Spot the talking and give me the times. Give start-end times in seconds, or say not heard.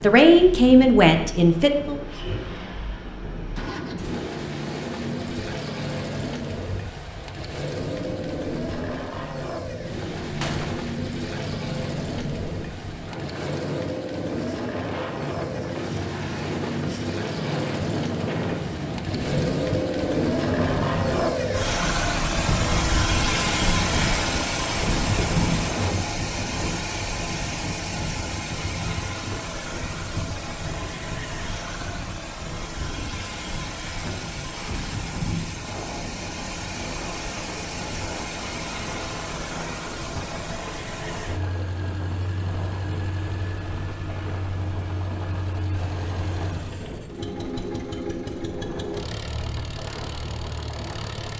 0.0-1.9.